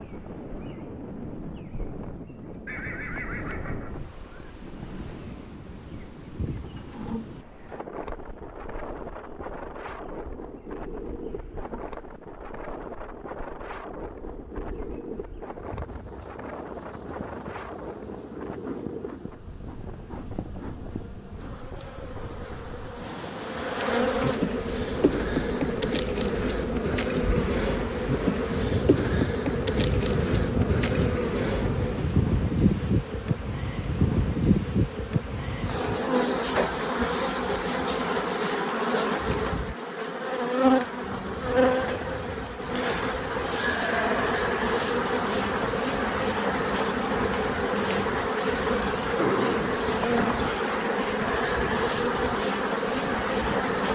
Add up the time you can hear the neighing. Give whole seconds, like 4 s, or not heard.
3 s.